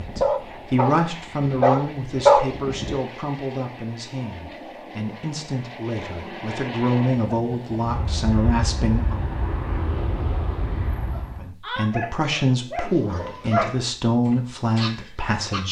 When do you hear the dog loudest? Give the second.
2 s.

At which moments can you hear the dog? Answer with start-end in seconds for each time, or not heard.
0.0-3.0, 11.1-15.6.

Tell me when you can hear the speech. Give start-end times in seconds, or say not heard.
0.0-9.2, 11.3-15.6.